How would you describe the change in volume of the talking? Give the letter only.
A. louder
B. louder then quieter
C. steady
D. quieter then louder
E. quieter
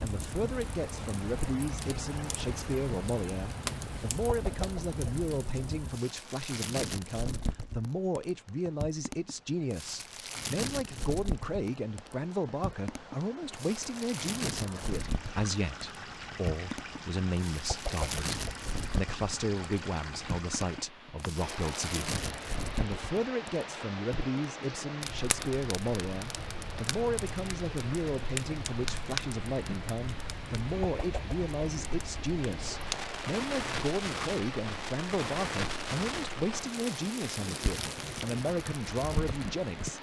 C.